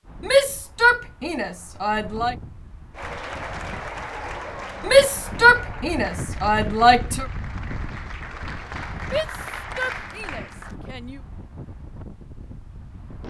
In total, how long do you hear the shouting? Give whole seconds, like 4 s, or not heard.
7 s.